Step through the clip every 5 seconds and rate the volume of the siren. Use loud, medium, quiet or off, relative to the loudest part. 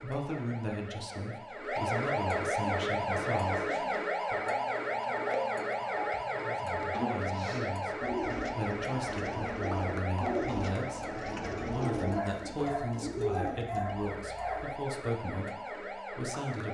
loud, loud, medium, medium.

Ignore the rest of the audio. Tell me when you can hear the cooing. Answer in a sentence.
The cooing can be heard from 2.6 to 13.6 s.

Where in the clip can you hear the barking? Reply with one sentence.
The barking can be heard from 12.2 to 14.8 s.